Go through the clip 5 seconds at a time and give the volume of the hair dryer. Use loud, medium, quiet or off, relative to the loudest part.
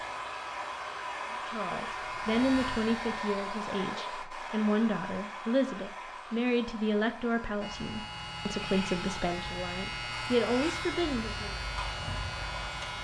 loud, medium, medium.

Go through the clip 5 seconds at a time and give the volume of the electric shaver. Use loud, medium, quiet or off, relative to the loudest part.
medium, loud, loud.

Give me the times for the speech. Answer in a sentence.
You can hear the speech from 1.4 to 11.6 s.